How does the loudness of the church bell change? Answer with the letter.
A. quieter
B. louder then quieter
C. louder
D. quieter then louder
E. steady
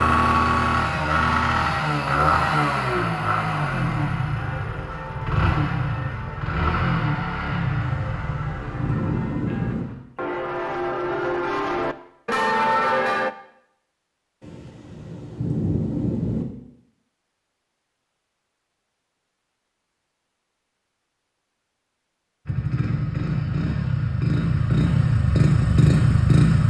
C.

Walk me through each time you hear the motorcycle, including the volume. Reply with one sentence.
You can hear the motorcycle from 0.0 to 9.9 s, getting quieter; and from 22.4 to 26.6 s, getting louder.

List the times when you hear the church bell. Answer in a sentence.
The church bell can be heard from 4.3 to 13.3 s.